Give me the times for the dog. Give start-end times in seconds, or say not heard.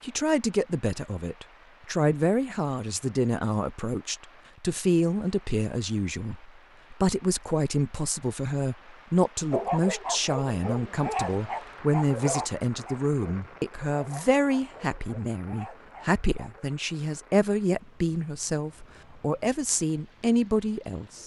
9.5-16.6.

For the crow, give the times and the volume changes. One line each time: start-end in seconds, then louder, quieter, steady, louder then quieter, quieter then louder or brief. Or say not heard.
not heard.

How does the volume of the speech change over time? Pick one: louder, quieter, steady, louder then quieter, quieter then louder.
steady.